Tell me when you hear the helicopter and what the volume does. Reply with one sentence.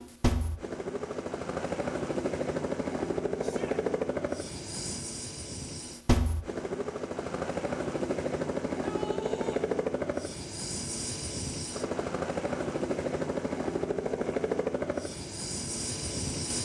The helicopter can be heard from 0.0 to 16.5 s, at a steady volume.